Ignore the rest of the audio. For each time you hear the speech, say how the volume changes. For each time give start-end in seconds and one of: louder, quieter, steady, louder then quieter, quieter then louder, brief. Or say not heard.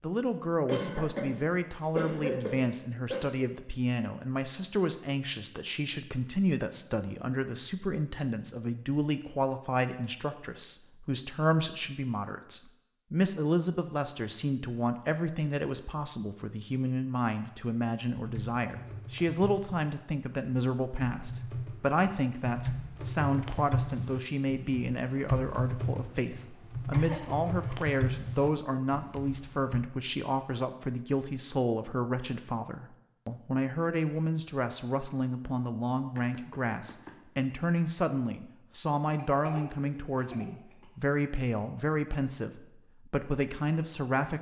0.0-44.3 steady.